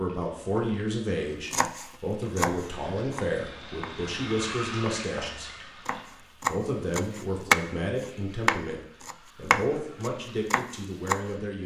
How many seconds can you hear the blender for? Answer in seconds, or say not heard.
not heard.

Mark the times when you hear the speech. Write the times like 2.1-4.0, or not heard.
0.0-5.7, 6.5-11.6.